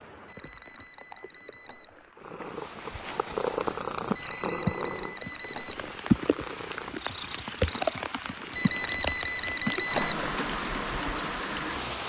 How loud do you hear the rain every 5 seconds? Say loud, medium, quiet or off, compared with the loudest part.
medium, loud, loud.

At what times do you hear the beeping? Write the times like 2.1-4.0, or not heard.
0.2-2.1, 4.2-6.0, 8.6-10.4.